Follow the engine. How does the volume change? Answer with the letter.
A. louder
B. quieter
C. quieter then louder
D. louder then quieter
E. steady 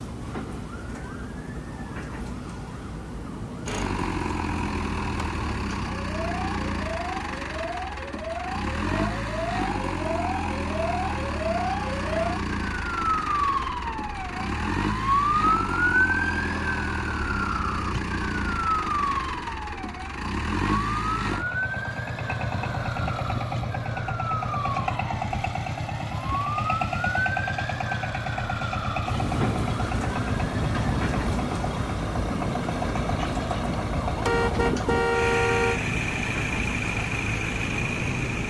E.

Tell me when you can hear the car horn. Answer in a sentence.
The car horn can be heard from 34.2 to 35.8 s.